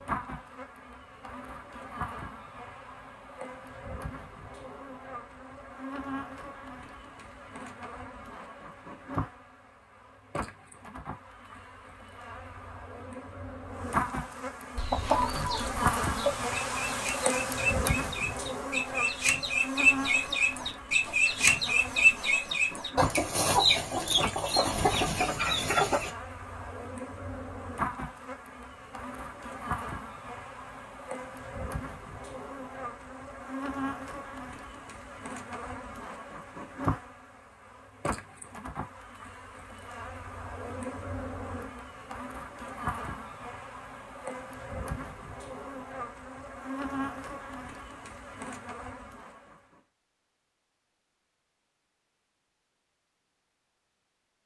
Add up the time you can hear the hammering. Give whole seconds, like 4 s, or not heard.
not heard.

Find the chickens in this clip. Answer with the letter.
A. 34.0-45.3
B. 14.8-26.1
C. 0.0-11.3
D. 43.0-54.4
B.